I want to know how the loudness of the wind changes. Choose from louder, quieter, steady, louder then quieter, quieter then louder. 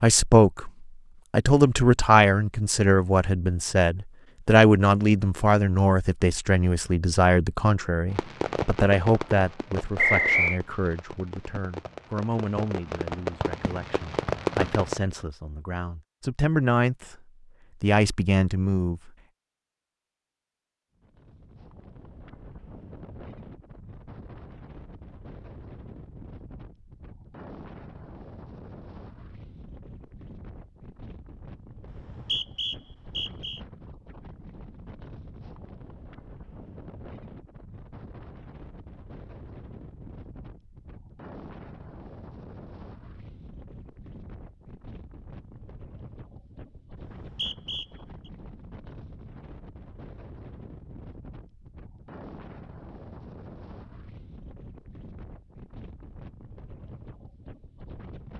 steady.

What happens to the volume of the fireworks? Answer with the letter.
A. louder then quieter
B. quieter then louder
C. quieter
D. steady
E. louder
B.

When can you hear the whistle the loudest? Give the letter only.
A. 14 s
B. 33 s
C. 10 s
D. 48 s
C.